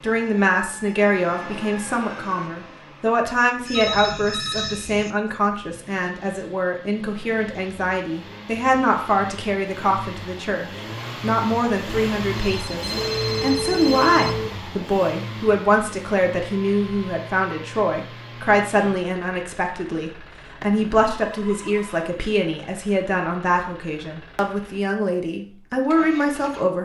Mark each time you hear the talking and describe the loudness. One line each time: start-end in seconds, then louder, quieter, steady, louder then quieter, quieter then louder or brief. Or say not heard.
0.0-26.8 steady.